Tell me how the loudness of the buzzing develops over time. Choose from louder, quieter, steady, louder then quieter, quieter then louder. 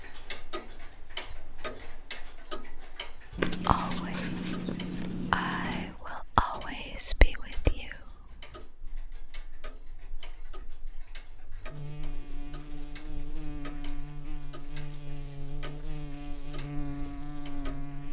louder.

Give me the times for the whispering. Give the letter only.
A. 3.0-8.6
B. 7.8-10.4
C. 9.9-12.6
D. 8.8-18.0
A.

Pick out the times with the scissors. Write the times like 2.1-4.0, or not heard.
3.4-6.0.